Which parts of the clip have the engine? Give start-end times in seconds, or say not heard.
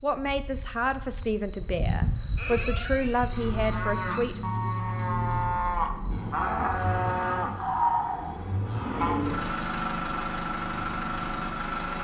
3.1-11.9.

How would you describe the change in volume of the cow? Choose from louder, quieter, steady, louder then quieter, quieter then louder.
louder.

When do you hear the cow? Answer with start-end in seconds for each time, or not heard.
2.4-9.2.